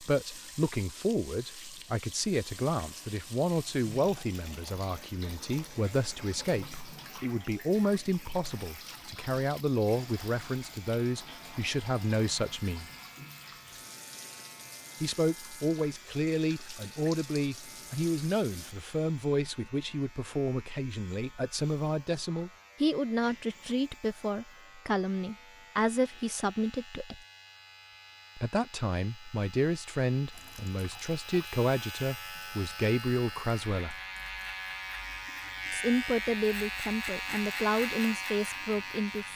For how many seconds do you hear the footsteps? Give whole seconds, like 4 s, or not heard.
not heard.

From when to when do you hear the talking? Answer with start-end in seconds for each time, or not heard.
0.0-12.8, 15.0-27.2, 28.4-34.0, 35.7-39.3.